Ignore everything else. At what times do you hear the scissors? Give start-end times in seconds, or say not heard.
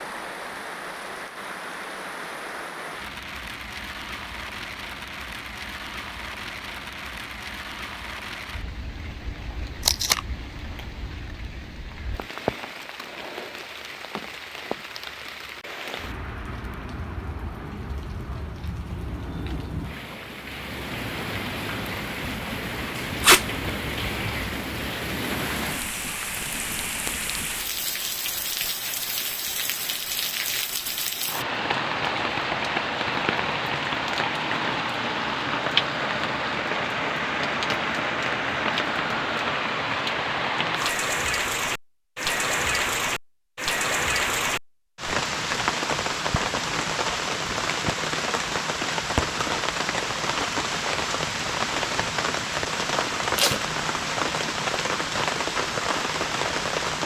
not heard.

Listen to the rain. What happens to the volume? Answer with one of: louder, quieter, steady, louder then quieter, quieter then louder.
louder.